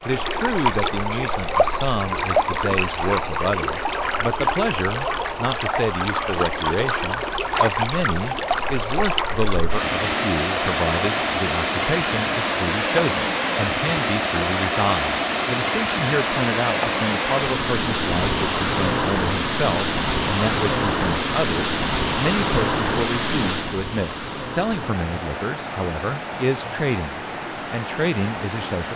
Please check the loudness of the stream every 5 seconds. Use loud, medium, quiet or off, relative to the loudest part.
loud, loud, loud, loud, loud, medium.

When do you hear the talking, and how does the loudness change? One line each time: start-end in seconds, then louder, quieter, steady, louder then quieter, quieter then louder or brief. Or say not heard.
0.1-28.9 steady.